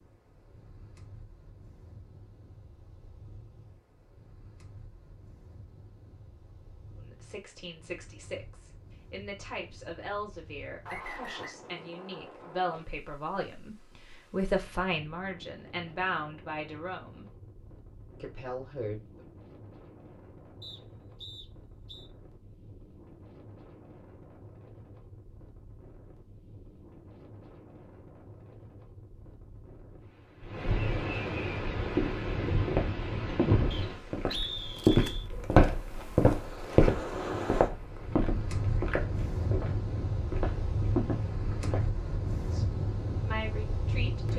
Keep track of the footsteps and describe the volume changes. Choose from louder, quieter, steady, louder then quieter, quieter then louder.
louder then quieter.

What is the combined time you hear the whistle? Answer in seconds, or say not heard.
4 s.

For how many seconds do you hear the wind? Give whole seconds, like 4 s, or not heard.
44 s.